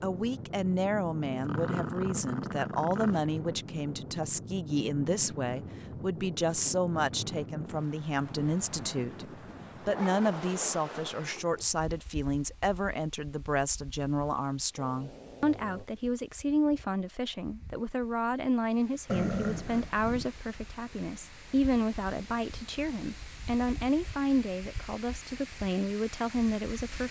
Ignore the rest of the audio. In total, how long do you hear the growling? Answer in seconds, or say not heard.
4 s.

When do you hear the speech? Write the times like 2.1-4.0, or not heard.
0.0-27.0.